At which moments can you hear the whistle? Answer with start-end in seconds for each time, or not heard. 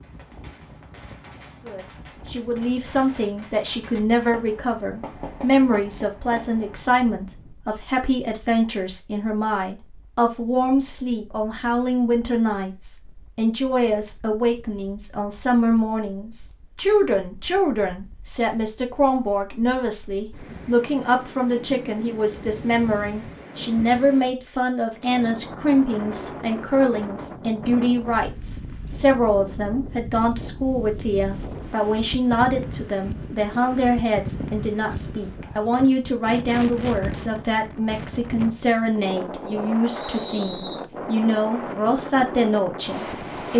40.0-40.8.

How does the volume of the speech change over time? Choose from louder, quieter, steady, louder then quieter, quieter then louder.
steady.